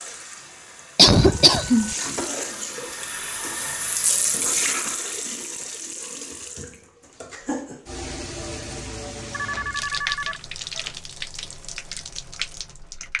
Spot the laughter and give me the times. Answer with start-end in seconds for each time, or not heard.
0.9-1.9.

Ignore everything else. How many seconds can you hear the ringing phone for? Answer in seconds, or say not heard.
3 s.